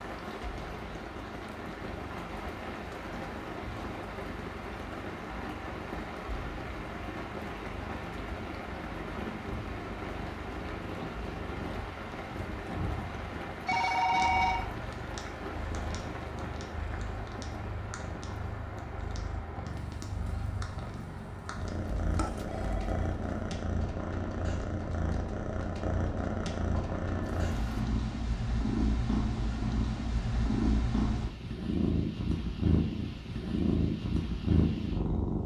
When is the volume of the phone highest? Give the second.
14 s.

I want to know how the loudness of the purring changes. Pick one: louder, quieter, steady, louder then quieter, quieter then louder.
louder.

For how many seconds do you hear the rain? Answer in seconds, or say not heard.
28 s.